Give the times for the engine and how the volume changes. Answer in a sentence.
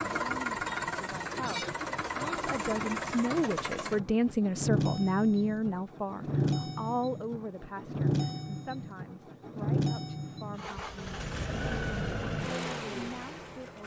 The engine can be heard from 0.0 to 13.8 s, at a steady volume.